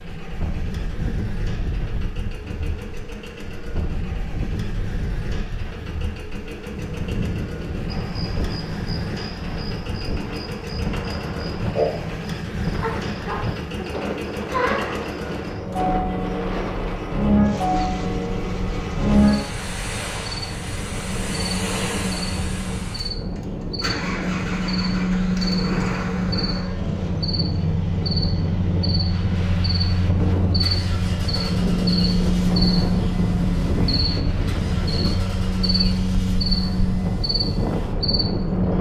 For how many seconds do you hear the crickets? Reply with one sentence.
You can hear the crickets for 31 seconds altogether.